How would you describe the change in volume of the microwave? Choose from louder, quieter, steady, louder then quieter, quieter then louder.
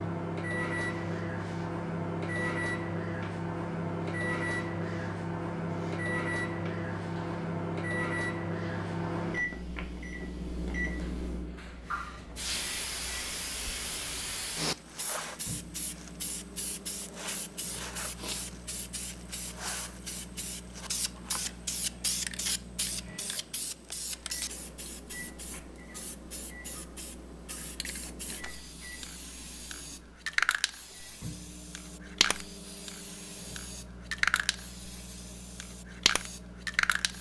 quieter.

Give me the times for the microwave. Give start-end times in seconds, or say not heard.
0.0-37.1.